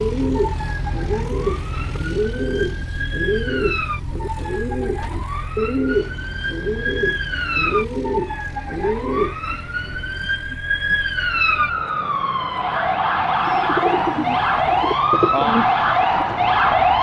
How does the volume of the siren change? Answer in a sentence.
The volume of the siren goes up.